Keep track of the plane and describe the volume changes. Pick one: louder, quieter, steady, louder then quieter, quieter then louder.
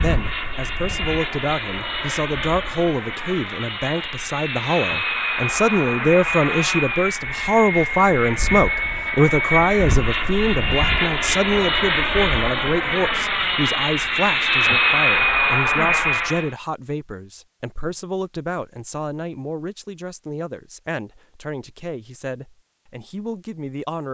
louder.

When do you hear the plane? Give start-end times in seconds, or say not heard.
0.0-16.5.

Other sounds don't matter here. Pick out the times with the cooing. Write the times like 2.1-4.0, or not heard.
not heard.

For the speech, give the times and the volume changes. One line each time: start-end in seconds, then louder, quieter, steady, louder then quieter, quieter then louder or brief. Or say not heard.
0.0-24.0 louder then quieter.